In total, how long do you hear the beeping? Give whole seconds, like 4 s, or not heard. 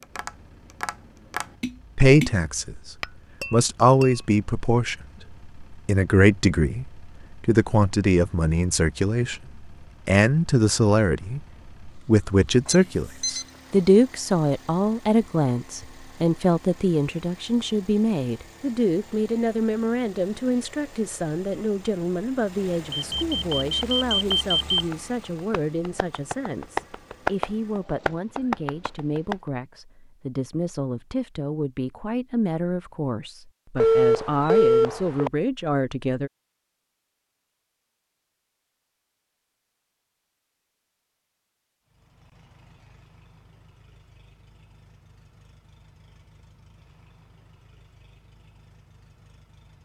4 s.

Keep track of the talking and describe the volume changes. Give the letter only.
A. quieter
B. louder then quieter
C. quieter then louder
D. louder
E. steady
A.